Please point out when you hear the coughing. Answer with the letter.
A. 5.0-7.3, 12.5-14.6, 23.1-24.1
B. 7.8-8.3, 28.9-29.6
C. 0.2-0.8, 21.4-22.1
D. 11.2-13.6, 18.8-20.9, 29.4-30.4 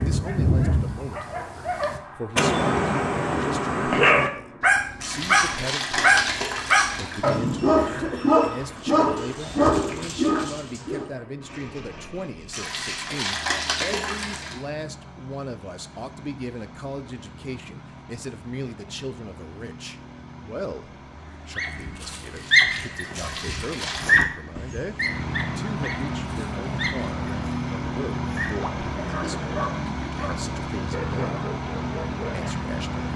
B.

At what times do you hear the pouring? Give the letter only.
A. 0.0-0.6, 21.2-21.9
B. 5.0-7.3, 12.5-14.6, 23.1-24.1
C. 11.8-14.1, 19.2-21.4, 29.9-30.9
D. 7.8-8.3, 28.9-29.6
B.